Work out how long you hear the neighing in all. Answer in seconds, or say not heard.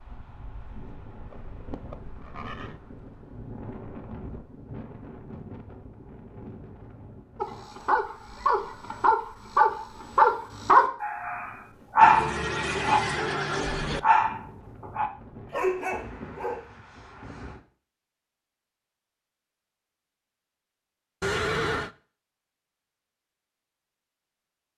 4 s.